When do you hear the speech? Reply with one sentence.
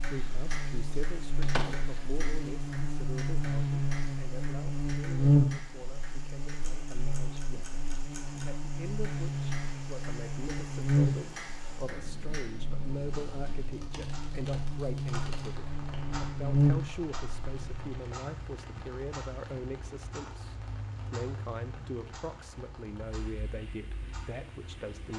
You can hear the speech from 0.1 to 25.1 s.